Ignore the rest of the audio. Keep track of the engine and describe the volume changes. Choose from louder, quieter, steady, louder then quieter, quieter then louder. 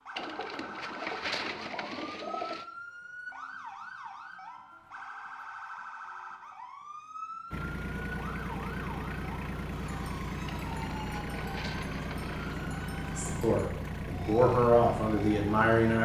steady.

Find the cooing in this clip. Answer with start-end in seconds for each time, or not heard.
0.1-2.6, 10.4-12.7.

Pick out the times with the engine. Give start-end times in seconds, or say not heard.
7.5-16.0.